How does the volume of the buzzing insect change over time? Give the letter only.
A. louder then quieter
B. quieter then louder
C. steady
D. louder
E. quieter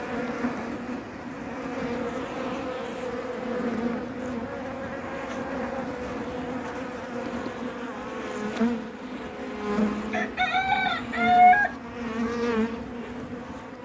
C.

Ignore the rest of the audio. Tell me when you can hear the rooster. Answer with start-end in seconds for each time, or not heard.
10.1-11.7.